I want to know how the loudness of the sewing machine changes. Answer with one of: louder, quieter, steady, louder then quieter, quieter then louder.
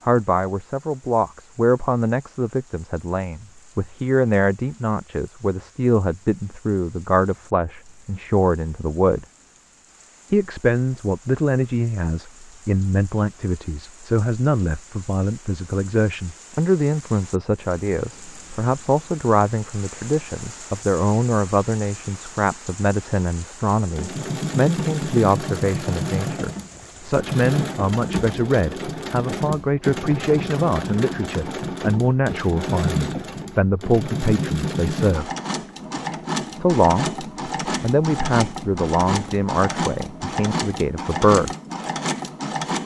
steady.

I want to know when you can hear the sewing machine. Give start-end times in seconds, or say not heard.
23.8-42.8.